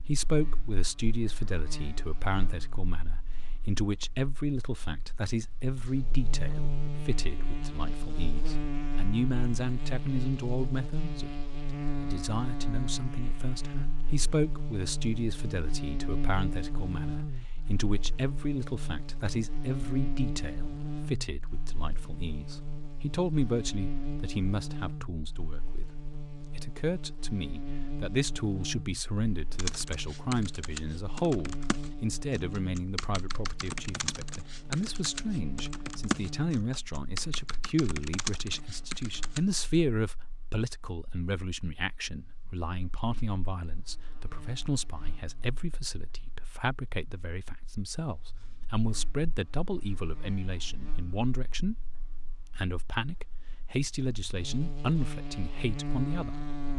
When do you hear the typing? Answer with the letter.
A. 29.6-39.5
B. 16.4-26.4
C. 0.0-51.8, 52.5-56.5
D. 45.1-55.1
A.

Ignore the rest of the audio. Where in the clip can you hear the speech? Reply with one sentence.
You can hear the speech from 0.0 to 51.8 s and from 52.5 to 56.5 s.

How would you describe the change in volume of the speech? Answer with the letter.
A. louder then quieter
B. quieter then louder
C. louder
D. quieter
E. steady
E.